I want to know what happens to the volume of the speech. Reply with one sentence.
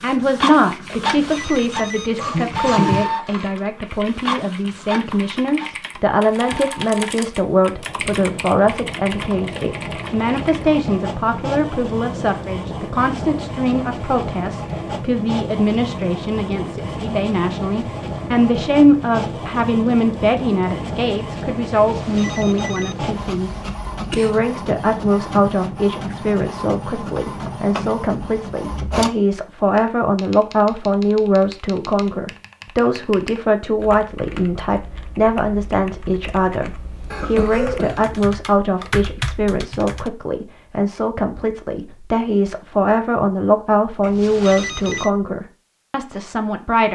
The volume of the speech stays about the same.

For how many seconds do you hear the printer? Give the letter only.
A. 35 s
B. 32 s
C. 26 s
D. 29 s
D.